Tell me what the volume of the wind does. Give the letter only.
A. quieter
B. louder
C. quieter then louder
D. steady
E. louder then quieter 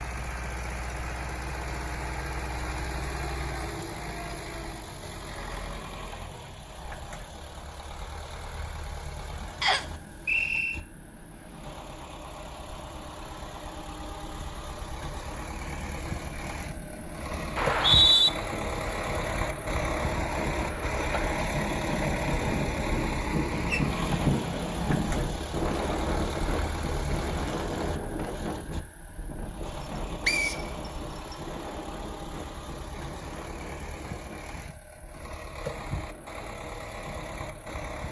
E.